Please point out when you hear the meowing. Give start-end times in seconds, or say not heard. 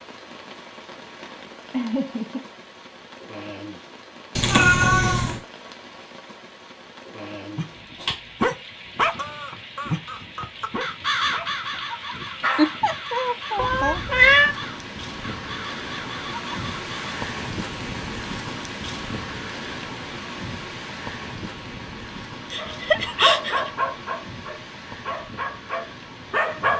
4.3-5.4, 13.6-14.6.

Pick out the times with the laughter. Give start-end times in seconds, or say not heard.
1.7-2.5, 12.6-14.0, 22.5-23.7.